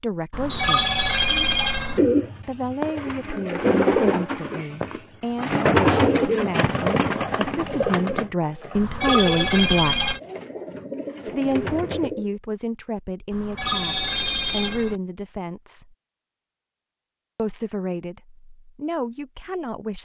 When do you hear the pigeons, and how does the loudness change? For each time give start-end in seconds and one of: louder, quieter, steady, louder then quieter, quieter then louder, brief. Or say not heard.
1.3-12.3 quieter.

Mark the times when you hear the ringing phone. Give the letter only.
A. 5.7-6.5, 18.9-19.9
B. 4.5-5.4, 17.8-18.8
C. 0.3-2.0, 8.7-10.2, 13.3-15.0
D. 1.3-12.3
C.